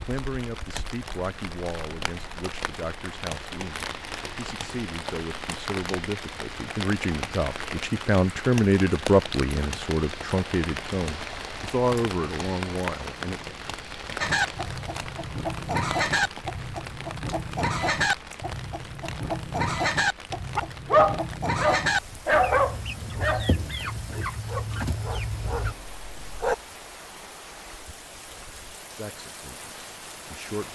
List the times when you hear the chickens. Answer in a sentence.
The chickens can be heard from 14.2 to 25.8 s.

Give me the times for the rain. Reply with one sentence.
The rain can be heard from 0.0 to 30.6 s.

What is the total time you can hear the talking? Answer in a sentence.
The talking can be heard for 15 seconds in total.